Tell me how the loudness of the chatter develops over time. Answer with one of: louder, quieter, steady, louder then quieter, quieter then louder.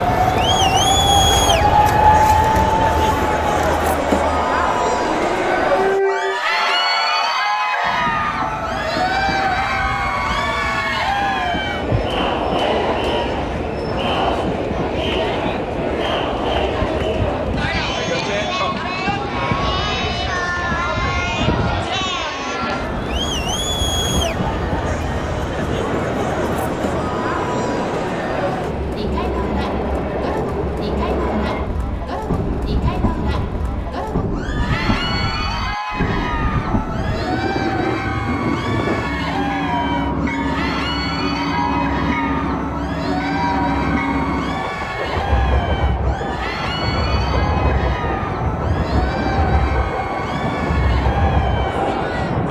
quieter.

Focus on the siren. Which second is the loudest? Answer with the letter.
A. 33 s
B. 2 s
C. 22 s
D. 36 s
B.